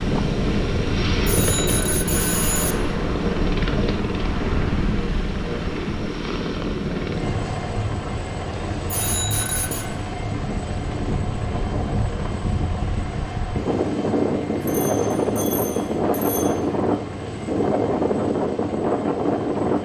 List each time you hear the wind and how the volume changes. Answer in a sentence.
The wind can be heard from 0.0 to 19.7 s, getting louder.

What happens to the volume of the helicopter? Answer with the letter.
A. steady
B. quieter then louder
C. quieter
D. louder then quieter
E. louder
C.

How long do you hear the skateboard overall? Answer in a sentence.
You can't hear the skateboard here.